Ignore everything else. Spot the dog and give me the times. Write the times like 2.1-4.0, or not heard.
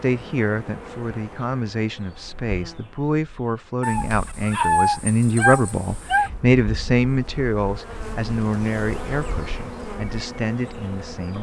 3.8-6.3.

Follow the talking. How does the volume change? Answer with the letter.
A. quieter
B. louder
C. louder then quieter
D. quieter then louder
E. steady
C.